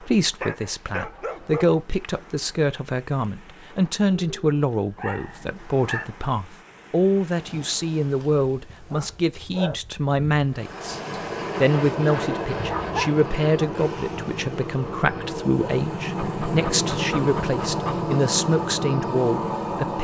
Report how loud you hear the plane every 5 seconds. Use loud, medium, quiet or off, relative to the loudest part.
off, off, loud, loud.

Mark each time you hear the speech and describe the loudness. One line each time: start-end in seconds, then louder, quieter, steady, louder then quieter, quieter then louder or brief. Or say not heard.
0.0-19.9 steady.